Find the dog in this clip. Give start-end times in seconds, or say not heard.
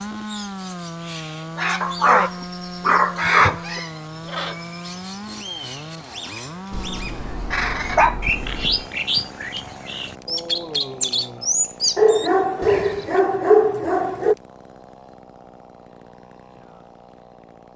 1.8-3.8, 6.7-8.8, 11.9-14.3.